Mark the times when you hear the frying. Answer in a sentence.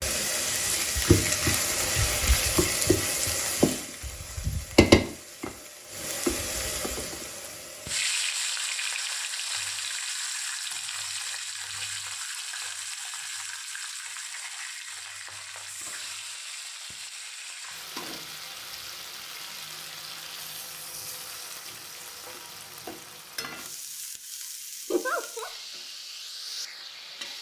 The frying can be heard from 0.0 to 27.3 s.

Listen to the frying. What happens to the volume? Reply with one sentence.
The volume of the frying goes down.